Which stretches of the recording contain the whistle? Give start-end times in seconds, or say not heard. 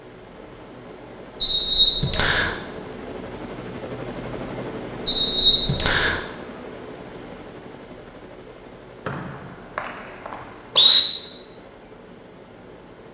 1.4-2.5, 5.0-6.2, 9.1-11.0.